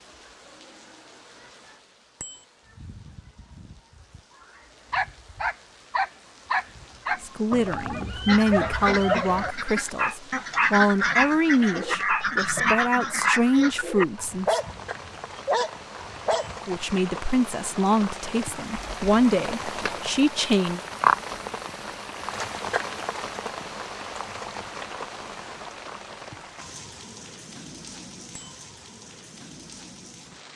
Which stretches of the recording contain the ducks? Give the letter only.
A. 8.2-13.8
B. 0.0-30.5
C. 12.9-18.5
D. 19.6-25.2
A.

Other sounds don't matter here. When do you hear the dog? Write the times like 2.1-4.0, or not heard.
4.9-16.6.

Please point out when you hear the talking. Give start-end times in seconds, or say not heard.
7.2-14.6, 16.6-20.8.